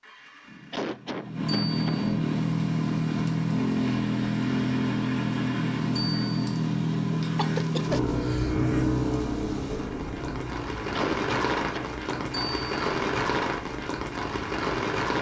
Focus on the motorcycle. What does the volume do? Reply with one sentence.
The volume of the motorcycle goes down.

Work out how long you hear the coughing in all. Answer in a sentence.
The coughing can be heard for 4 seconds in total.